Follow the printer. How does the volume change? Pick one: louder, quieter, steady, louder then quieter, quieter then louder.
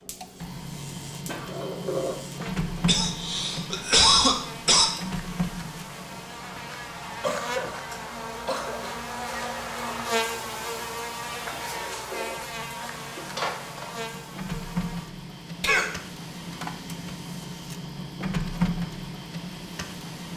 quieter then louder.